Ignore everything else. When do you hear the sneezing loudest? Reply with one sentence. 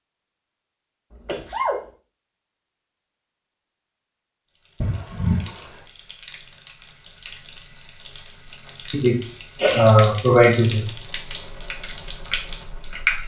The loudest moment of the sneezing is at 10 seconds.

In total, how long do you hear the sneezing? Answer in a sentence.
The sneezing can be heard for 4 seconds in total.